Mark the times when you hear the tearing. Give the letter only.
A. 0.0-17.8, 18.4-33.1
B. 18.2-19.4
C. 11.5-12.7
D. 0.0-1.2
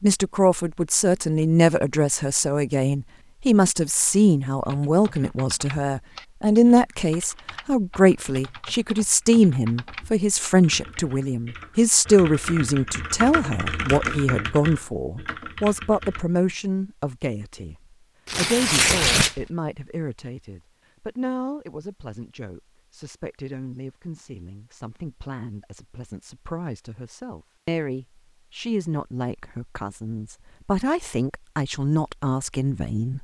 B.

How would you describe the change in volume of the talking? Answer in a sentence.
The loudness of the talking goes down, then up.